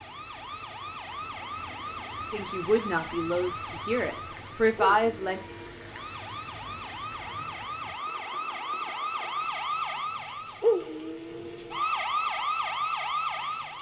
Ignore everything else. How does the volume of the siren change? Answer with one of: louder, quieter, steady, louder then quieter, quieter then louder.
louder.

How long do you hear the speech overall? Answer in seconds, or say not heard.
3 s.